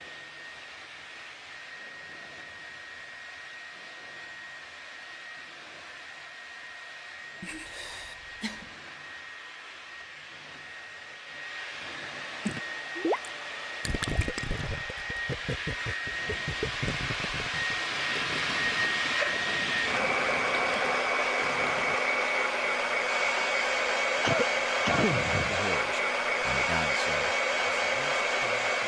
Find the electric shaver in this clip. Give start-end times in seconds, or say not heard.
not heard.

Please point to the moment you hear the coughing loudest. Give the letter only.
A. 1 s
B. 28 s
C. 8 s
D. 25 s
D.